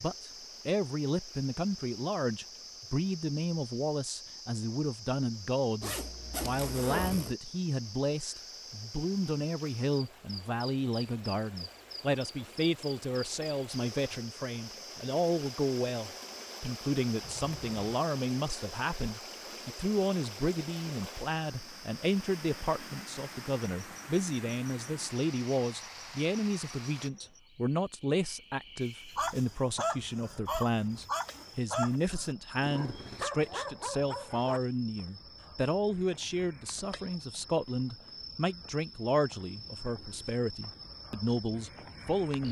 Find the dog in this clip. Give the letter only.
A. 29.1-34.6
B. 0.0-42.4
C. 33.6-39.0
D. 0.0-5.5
A.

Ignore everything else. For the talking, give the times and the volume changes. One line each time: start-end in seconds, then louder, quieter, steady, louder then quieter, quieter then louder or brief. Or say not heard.
0.0-42.4 steady.